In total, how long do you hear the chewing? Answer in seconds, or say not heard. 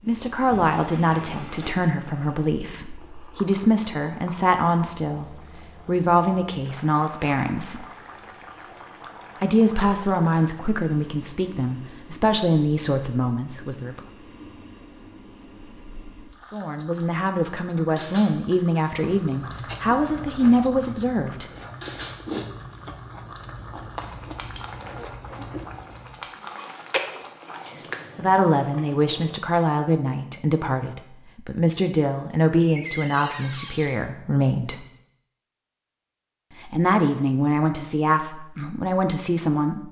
9 s.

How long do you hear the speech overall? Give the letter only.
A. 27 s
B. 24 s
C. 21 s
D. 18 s
A.